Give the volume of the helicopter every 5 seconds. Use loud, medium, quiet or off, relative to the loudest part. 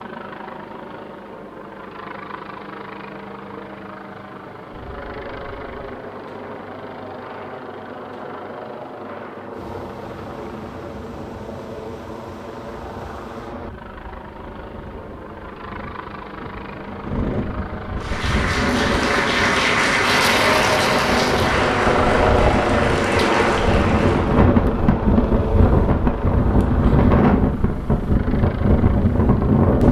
quiet, quiet, quiet, medium, loud, medium.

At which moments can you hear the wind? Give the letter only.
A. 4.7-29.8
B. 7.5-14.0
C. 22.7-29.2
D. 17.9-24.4
A.